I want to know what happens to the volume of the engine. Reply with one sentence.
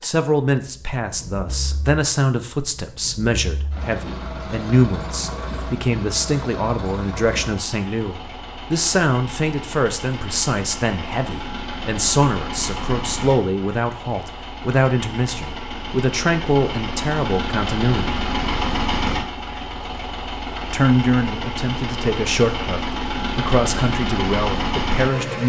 The volume of the engine goes up.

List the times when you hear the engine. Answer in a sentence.
The engine can be heard from 0.0 to 25.4 s.